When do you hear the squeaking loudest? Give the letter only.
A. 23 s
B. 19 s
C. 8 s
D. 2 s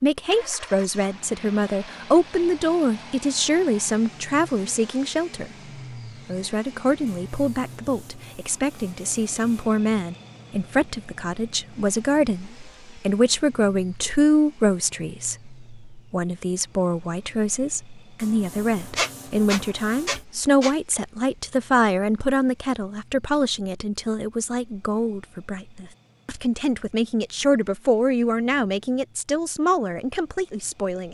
B.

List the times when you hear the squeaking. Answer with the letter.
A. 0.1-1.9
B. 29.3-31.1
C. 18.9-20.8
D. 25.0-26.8
C.